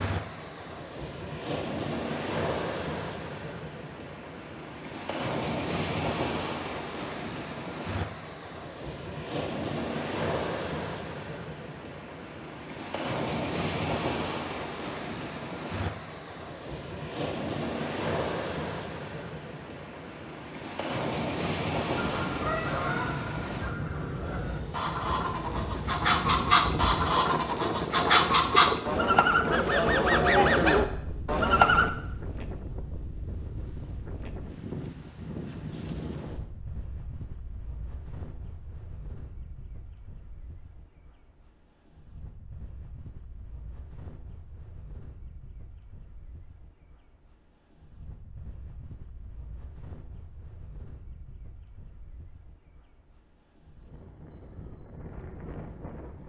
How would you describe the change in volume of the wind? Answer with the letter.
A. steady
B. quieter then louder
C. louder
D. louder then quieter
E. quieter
E.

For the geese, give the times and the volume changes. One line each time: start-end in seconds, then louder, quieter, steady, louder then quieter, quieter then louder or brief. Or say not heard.
21.9-31.9 louder.